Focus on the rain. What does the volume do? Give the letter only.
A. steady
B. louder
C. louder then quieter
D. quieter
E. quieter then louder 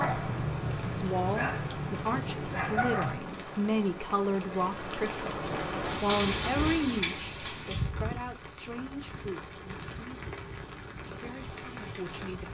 C.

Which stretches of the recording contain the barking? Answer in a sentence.
You can hear the barking from 0.0 to 3.2 s.